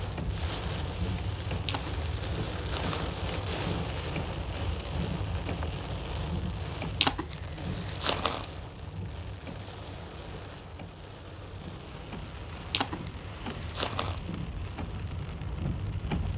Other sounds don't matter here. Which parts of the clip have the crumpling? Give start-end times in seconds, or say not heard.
1.6-3.5, 7.0-8.4, 12.7-14.2.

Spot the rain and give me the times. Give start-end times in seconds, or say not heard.
0.0-16.3.